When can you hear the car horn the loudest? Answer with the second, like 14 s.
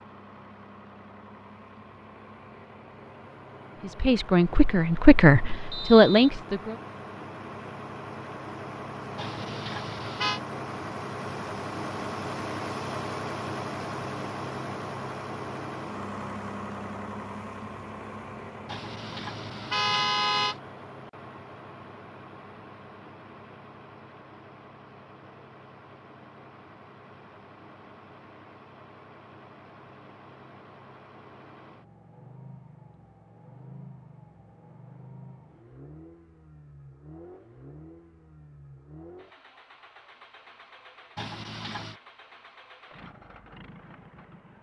20 s.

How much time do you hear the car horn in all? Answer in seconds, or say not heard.
4 s.